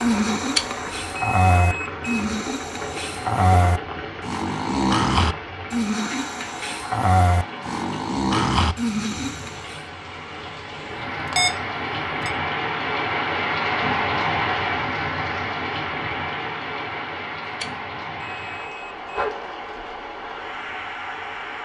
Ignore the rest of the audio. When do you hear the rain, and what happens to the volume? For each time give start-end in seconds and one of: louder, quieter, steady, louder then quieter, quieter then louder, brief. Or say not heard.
0.0-21.6 louder then quieter.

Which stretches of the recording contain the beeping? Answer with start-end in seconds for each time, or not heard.
0.6-2.0, 10.9-12.3, 17.6-19.2.